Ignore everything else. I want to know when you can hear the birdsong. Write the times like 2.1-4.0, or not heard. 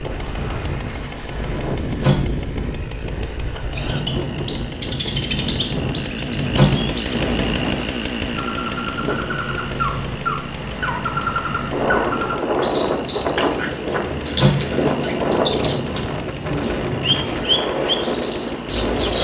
3.8-19.1.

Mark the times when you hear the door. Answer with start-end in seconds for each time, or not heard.
2.0-2.7, 6.5-7.0, 14.3-14.8.